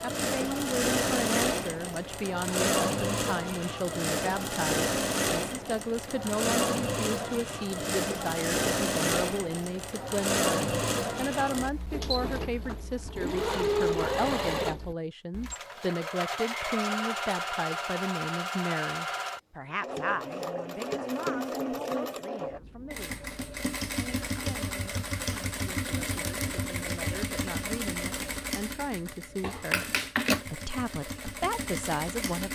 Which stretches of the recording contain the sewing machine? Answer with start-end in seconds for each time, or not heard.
0.0-32.5.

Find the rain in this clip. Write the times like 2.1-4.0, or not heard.
not heard.